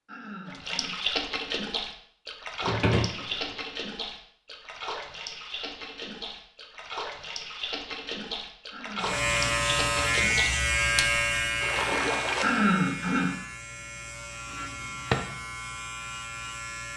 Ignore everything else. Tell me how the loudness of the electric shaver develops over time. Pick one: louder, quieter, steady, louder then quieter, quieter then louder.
quieter.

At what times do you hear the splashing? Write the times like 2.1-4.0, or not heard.
0.5-12.7.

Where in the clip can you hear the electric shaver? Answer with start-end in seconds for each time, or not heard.
9.0-16.9.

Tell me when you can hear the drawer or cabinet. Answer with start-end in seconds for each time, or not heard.
2.6-3.5, 14.7-15.2.